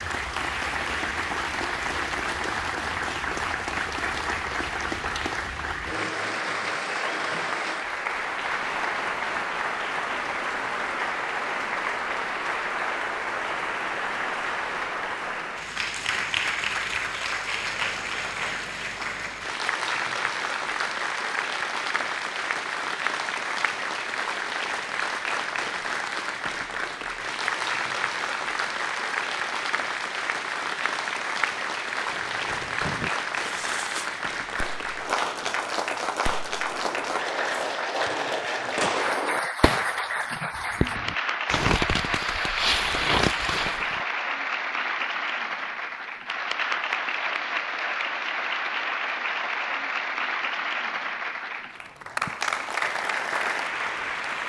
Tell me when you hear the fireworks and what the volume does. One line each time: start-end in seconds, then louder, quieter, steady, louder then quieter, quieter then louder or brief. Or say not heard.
32.0-44.0 louder.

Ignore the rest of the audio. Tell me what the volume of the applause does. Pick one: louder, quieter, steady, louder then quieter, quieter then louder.
steady.